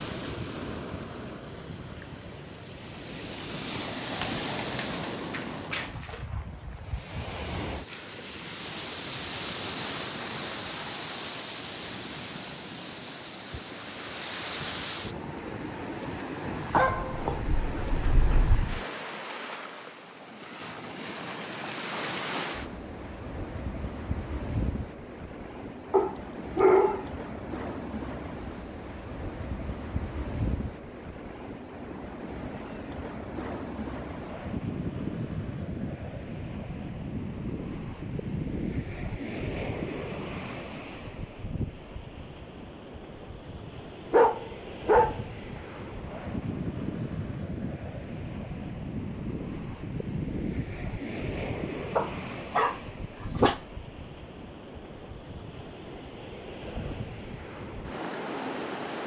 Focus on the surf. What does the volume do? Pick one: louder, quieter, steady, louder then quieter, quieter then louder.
steady.